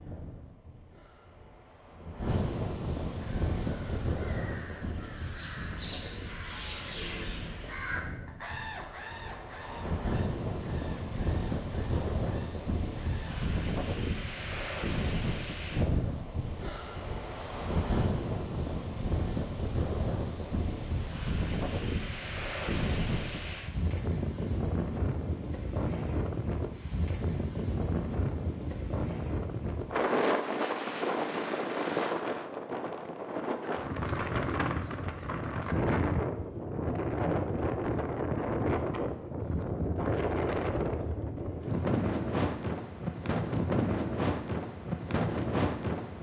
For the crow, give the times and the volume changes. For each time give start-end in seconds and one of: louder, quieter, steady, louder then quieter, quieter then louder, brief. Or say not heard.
3.1-13.4 louder then quieter.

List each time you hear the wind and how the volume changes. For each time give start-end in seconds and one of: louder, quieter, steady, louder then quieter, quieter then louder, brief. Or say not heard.
0.0-46.1 louder.